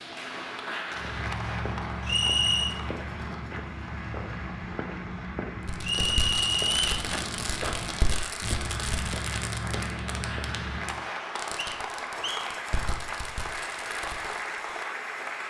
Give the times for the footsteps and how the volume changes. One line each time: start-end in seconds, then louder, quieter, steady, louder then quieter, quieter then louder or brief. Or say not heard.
0.9-11.1 steady.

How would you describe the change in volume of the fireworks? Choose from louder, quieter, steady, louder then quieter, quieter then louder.
quieter.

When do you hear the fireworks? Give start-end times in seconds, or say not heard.
5.7-14.6.